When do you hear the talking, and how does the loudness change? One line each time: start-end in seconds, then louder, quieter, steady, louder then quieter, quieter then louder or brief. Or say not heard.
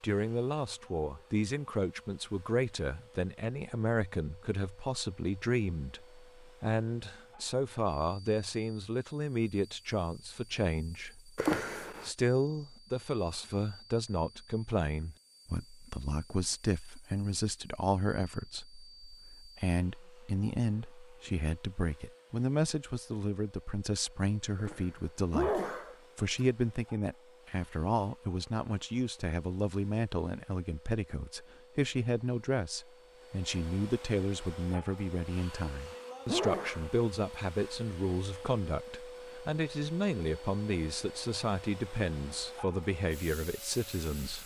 0.0-44.4 steady.